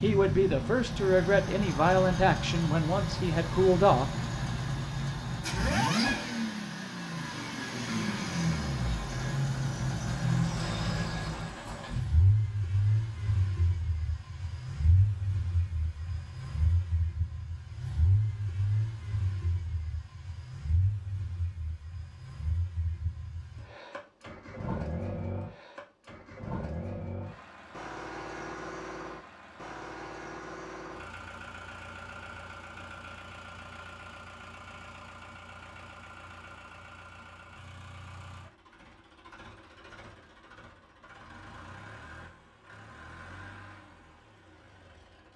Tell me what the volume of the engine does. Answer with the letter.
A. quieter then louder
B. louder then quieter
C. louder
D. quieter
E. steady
D.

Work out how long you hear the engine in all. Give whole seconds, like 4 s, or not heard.
45 s.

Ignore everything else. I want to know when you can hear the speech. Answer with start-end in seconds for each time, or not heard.
0.0-4.1.